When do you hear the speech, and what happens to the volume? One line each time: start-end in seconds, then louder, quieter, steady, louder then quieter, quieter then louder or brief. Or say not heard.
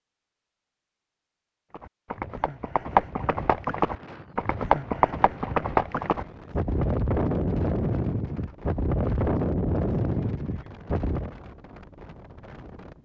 not heard.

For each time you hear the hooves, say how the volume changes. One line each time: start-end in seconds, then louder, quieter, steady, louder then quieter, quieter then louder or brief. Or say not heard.
1.7-11.3 steady.